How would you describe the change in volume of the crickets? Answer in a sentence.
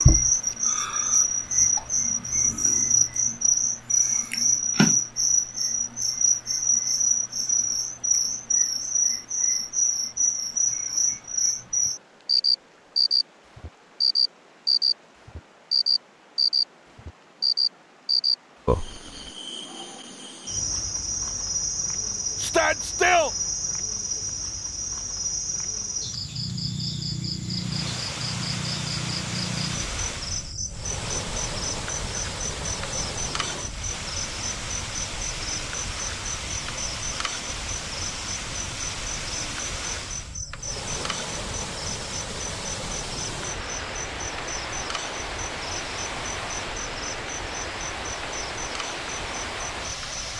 The volume of the crickets goes down.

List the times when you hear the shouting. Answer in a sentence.
The shouting can be heard from 22.4 to 23.3 s.